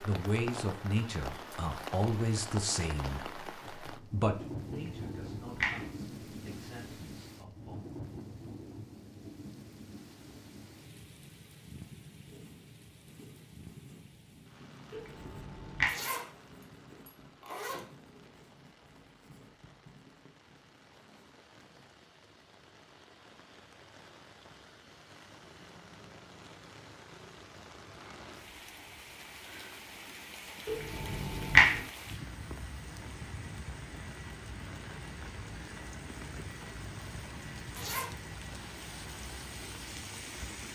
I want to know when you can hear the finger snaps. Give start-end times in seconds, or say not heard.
4.7-5.8, 14.9-15.9, 30.6-31.8.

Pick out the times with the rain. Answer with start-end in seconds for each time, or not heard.
0.0-40.7.